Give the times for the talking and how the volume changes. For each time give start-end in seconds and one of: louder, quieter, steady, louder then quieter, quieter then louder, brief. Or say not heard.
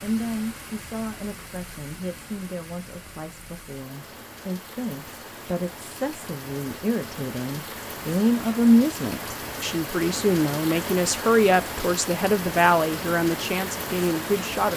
0.0-14.7 louder.